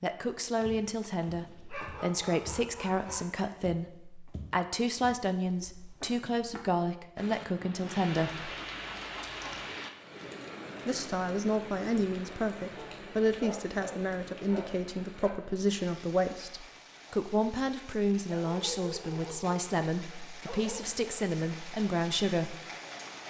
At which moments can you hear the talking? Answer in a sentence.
The talking can be heard from 0.0 to 8.5 s and from 10.8 to 22.6 s.